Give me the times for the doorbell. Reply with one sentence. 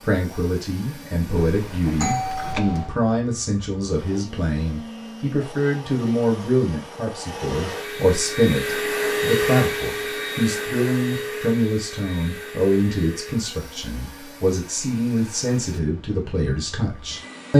You can hear the doorbell from 1.4 to 3.0 s.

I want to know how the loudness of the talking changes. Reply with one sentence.
The volume of the talking stays about the same.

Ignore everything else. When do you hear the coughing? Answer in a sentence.
The coughing can't be heard in this clip.